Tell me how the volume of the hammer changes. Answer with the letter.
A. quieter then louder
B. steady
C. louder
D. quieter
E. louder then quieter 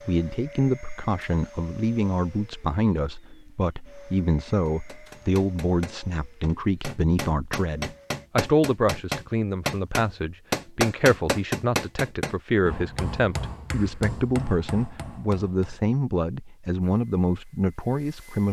E.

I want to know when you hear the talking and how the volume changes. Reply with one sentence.
The talking can be heard from 0.1 to 18.4 s, at a steady volume.